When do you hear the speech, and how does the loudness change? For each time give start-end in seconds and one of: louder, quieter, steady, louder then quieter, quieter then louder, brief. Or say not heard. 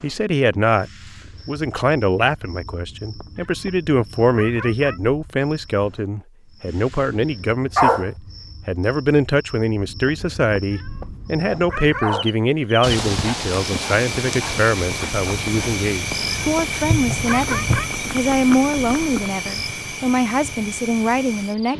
0.0-21.7 steady.